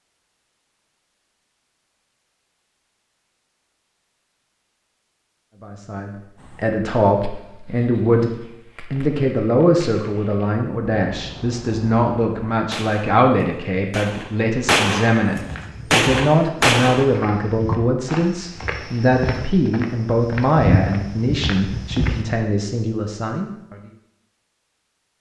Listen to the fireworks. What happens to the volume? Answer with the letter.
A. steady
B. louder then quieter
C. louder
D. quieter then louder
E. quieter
C.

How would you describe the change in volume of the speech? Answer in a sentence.
The loudness of the speech stays about the same.